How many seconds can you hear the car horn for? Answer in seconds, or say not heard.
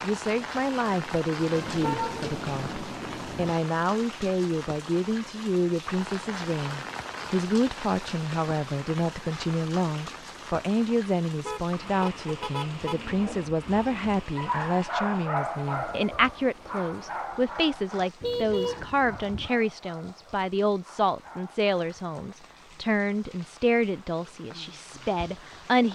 5 s.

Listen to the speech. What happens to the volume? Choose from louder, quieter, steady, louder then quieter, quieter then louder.
steady.